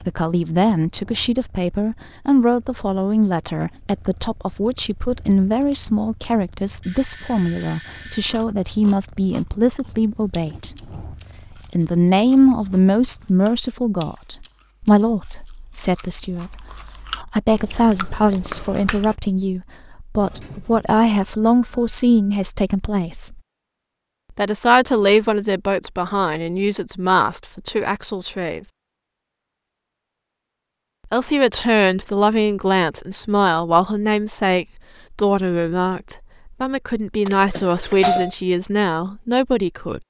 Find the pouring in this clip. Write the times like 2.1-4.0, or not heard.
not heard.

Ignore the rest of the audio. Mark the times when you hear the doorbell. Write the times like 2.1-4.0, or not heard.
6.8-8.3, 20.1-22.4, 37.2-38.3.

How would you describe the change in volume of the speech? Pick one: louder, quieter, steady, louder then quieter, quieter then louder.
steady.